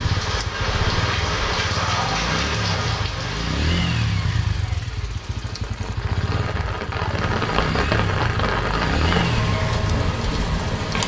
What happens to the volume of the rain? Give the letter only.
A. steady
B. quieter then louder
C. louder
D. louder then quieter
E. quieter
B.